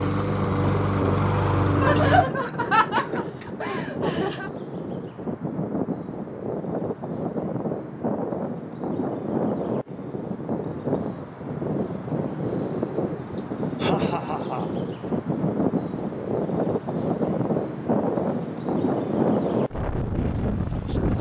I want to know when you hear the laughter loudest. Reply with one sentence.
The loudest moment of the laughter is at 2 seconds.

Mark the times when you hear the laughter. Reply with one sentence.
The laughter can be heard from 1.8 to 4.5 s and from 13.3 to 14.8 s.